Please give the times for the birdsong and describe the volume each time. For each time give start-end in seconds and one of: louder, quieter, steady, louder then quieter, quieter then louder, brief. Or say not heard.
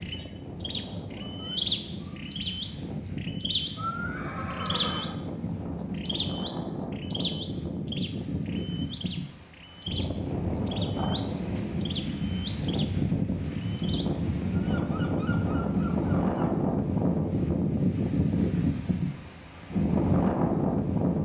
0.0-16.6 quieter.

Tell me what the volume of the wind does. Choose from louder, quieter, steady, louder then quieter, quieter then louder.
louder.